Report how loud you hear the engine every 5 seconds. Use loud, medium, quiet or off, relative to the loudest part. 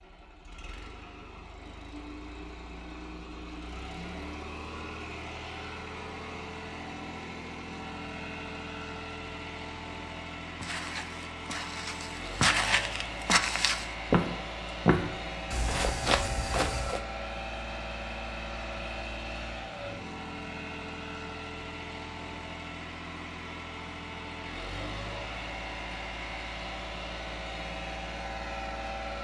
medium, loud, loud, loud, loud, loud.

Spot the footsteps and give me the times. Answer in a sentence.
The footsteps can be heard from 10.6 to 17.0 s.